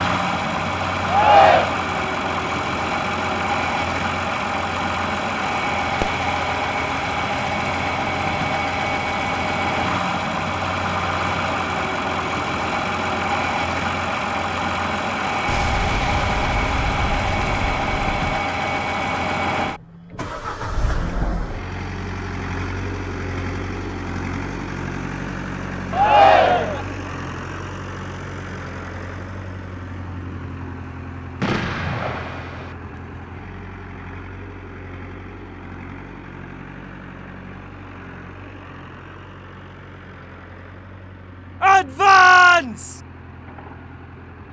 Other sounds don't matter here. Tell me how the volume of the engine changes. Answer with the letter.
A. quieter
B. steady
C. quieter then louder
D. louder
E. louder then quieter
A.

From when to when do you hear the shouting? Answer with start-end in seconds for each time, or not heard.
1.1-1.7, 25.9-26.9, 41.6-43.0.